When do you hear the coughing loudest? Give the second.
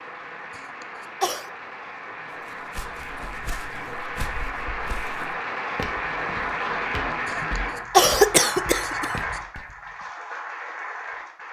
8 s.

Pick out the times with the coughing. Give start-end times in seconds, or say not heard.
0.6-1.5, 7.3-9.2.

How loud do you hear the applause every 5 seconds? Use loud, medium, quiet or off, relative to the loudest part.
medium, loud, medium.